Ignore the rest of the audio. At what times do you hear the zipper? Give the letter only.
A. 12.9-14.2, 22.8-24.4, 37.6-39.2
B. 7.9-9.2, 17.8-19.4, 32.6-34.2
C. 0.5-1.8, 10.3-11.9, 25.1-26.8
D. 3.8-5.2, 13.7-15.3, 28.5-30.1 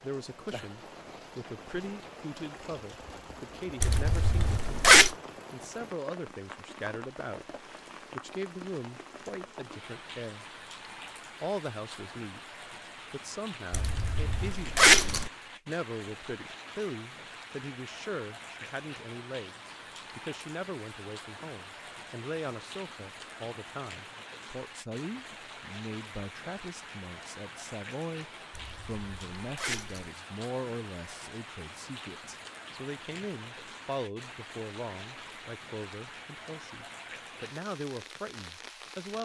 D.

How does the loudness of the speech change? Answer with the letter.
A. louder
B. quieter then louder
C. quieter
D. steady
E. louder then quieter
D.